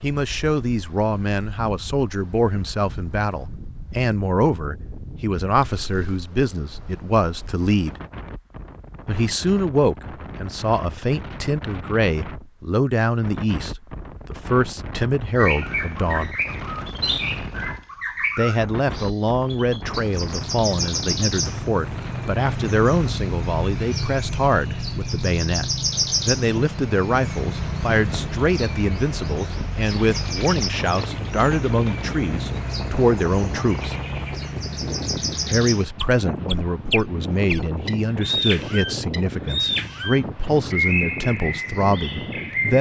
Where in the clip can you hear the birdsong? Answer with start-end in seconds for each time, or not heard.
15.3-42.7.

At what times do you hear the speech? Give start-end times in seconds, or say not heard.
0.0-8.0, 9.1-16.4, 18.4-34.0, 35.5-42.7.